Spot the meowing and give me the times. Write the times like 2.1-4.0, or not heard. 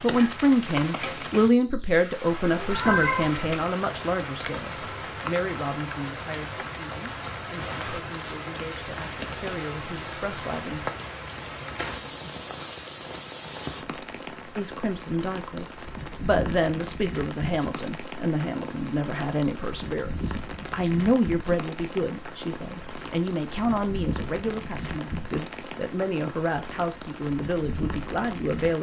2.5-3.7.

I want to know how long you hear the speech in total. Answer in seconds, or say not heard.
25 s.